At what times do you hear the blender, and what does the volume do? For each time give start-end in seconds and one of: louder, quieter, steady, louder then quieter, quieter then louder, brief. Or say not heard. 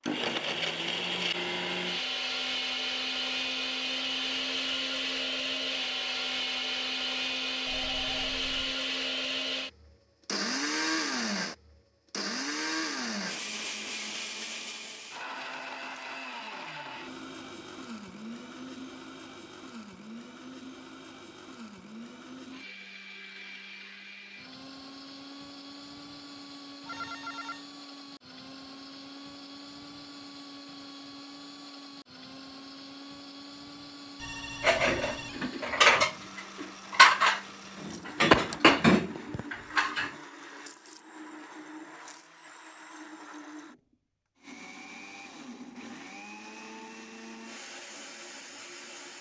0.0-49.1 quieter.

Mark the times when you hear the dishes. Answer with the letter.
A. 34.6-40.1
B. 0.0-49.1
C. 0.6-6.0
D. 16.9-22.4
A.